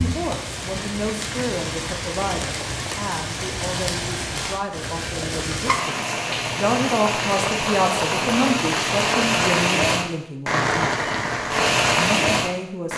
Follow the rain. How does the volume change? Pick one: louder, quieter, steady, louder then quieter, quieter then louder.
louder.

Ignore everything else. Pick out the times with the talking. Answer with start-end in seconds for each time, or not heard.
0.0-10.9, 11.9-12.9.